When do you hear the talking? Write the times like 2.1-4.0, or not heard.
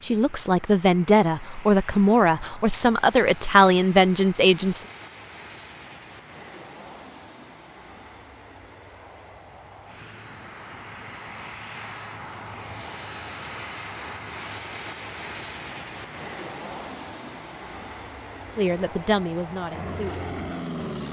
0.0-4.8, 18.6-20.2.